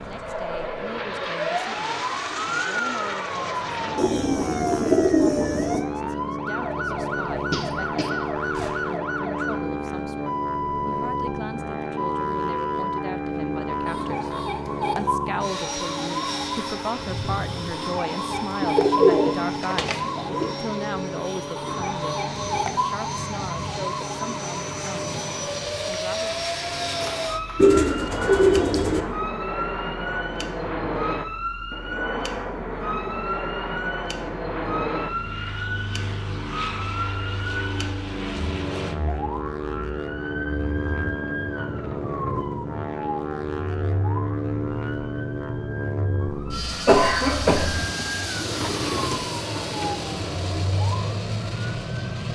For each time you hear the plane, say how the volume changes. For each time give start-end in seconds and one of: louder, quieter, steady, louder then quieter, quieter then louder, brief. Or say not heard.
0.0-52.3 steady.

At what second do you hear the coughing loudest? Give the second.
47 s.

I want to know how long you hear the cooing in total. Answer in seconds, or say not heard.
8 s.